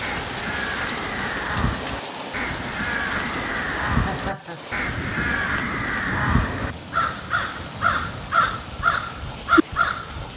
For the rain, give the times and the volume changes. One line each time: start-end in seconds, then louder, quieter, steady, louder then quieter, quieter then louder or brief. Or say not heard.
0.0-10.3 quieter.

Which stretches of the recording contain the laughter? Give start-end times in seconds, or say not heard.
3.9-4.6.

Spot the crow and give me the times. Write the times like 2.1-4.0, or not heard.
0.0-10.3.